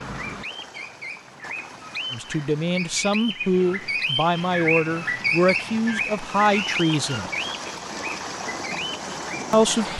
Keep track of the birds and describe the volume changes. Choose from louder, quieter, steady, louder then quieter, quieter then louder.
louder then quieter.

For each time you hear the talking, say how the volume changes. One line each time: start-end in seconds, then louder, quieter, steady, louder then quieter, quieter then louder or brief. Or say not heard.
2.1-7.3 steady
9.5-9.9 brief.